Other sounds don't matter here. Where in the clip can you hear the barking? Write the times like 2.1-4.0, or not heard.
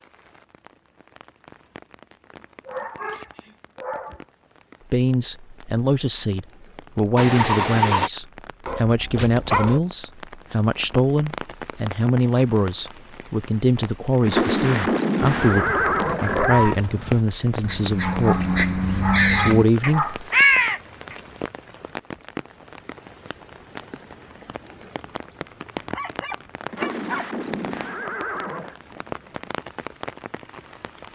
2.6-4.2, 8.7-9.8, 17.9-20.3, 25.8-27.2.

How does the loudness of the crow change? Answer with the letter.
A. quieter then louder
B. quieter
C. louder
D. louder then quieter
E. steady
C.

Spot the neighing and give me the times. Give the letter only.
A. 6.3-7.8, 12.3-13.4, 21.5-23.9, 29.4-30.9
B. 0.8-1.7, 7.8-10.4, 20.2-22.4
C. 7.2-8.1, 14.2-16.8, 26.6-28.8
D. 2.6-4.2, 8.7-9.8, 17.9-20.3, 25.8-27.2
C.